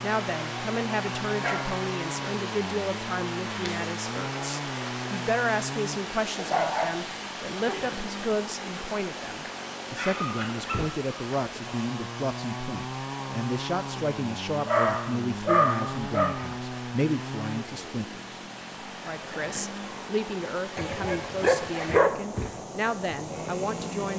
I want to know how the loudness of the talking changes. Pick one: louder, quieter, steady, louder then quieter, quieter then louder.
steady.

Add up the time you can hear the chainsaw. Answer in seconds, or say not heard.
24 s.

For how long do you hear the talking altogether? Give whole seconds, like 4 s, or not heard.
23 s.